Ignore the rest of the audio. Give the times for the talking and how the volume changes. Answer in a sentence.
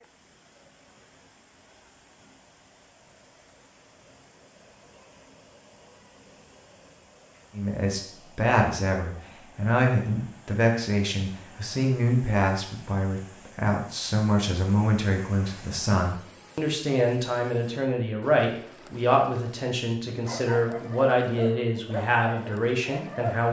The talking can be heard from 7.5 to 23.4 s, at a steady volume.